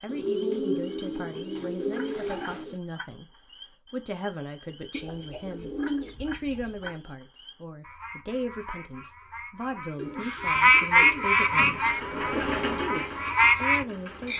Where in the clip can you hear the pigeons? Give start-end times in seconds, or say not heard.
0.1-2.8, 4.9-7.0, 9.9-12.6.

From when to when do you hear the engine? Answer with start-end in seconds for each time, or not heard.
11.5-14.3.